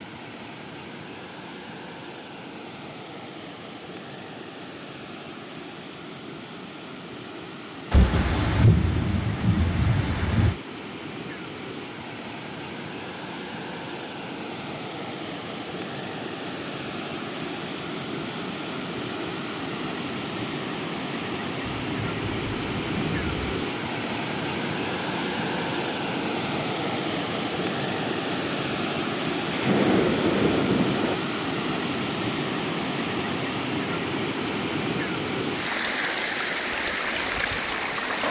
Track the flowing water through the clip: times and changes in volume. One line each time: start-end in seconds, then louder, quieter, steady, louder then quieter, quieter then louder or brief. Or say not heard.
0.0-38.2 louder.